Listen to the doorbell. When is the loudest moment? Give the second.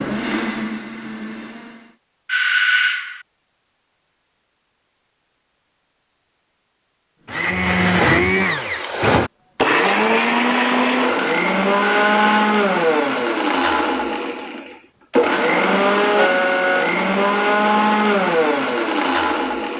3 s.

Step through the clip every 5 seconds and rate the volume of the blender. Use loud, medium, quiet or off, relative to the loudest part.
medium, loud, loud, loud.